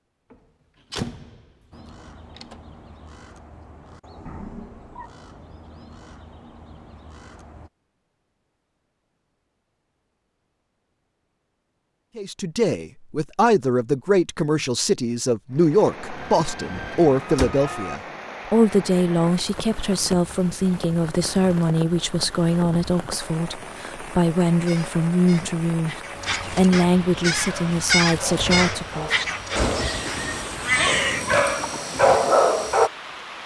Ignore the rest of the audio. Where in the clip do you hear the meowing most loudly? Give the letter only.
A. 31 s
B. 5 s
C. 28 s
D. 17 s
A.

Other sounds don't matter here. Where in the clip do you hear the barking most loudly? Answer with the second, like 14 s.
32 s.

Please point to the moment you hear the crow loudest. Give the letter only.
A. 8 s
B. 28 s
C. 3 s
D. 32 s
B.